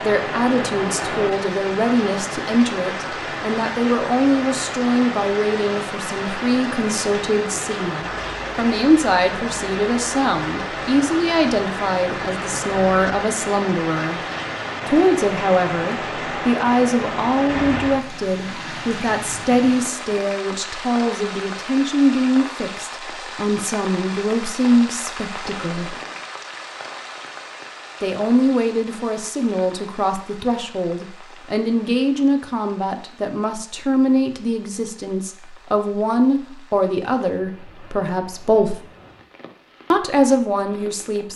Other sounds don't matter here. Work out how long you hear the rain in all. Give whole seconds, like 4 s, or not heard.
41 s.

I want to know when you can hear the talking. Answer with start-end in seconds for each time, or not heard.
0.0-14.2, 14.8-25.9, 28.0-38.8, 39.9-41.3.